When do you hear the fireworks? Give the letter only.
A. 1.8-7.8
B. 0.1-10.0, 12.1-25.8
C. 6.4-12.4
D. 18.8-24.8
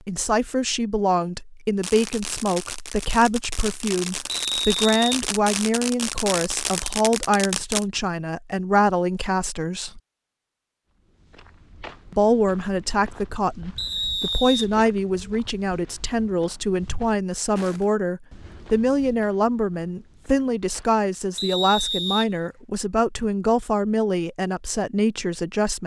A.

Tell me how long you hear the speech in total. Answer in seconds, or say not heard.
24 s.